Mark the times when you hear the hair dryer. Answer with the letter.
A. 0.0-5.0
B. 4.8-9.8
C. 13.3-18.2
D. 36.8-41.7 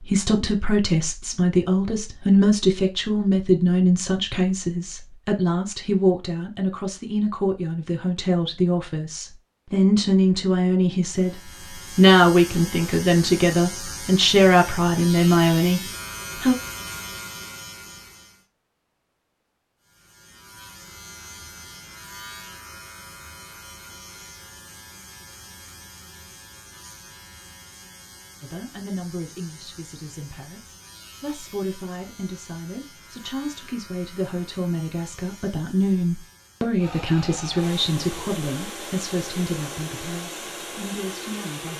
D.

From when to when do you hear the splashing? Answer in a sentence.
You can't hear the splashing here.